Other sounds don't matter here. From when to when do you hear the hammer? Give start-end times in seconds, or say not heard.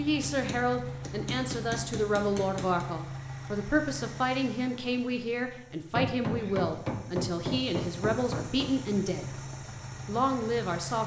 0.3-2.9, 5.9-8.8.